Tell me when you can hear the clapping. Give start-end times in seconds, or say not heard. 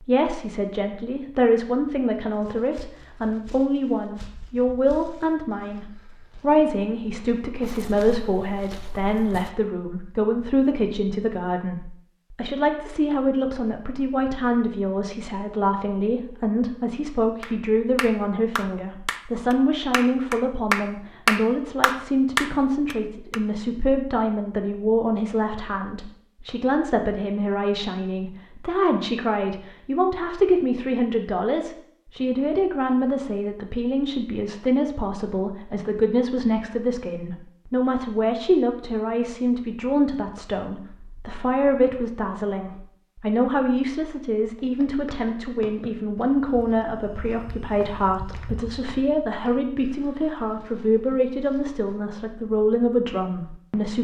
17.4-23.4.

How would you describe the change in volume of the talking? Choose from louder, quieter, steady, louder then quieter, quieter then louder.
steady.